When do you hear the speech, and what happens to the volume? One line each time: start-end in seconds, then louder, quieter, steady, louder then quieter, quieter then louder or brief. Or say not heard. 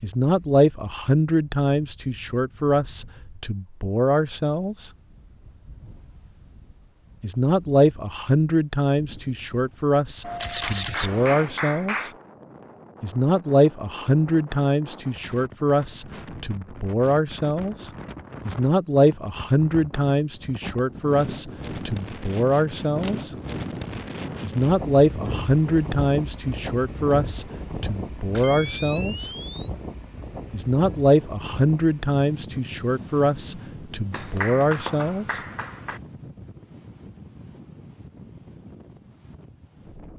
0.0-4.9 quieter then louder
7.2-12.1 quieter then louder
13.0-23.4 steady
24.4-29.3 quieter then louder
30.5-35.4 quieter then louder.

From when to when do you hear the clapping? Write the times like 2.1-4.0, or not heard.
10.6-12.2, 34.1-36.0.